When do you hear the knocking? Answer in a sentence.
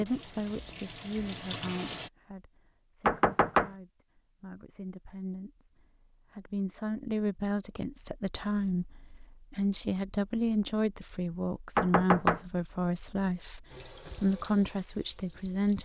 The knocking can be heard from 3.0 to 3.7 s and from 11.8 to 12.4 s.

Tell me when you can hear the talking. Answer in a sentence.
The talking can be heard from 0.0 to 15.8 s.